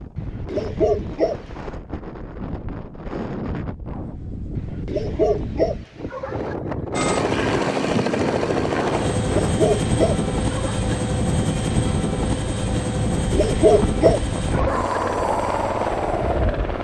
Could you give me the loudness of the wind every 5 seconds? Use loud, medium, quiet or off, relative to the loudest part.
medium, loud, loud, loud.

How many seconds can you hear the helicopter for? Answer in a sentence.
You can hear the helicopter for 10 seconds altogether.